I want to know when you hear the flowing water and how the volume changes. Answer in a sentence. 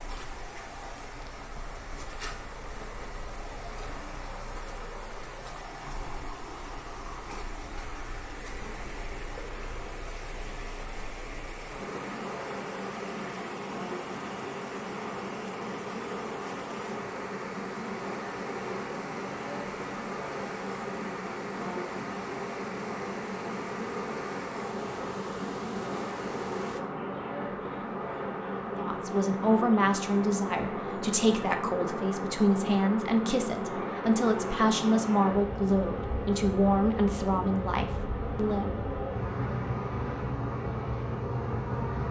You can hear the flowing water from 0.0 to 26.8 s, at a steady volume.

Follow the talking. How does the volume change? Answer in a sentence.
The loudness of the talking stays about the same.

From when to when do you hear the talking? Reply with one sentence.
You can hear the talking from 28.8 to 38.8 s.